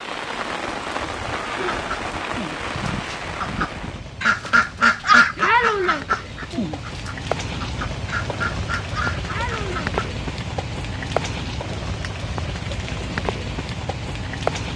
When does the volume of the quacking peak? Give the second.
5 s.